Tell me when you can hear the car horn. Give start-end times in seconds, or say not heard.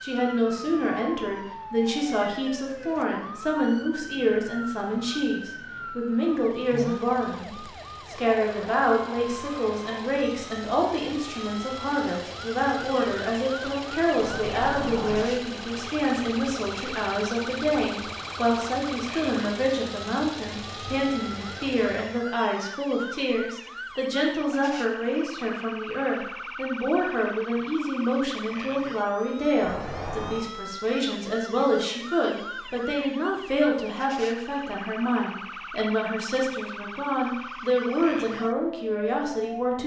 14.2-15.3, 29.6-30.4.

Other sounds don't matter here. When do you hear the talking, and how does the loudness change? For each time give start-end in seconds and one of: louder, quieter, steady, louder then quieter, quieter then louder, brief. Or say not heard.
0.0-39.8 steady.